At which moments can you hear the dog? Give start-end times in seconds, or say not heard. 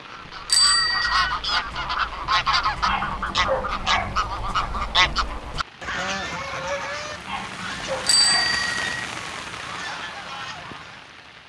2.9-4.2, 7.2-8.7.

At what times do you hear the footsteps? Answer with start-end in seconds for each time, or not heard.
not heard.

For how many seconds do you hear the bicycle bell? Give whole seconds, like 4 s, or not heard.
2 s.